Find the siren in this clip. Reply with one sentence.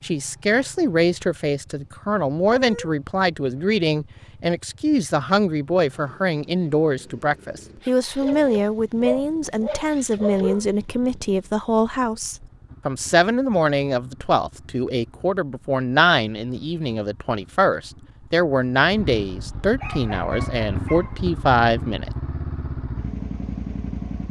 You can't hear the siren here.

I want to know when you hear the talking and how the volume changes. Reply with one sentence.
You can hear the talking from 0.0 to 22.1 s, at a steady volume.